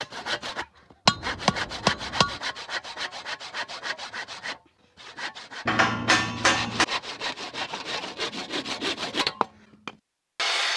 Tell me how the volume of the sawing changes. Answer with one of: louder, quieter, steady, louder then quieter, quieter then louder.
quieter then louder.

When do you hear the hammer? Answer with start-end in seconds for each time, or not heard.
1.1-2.4, 5.7-6.8.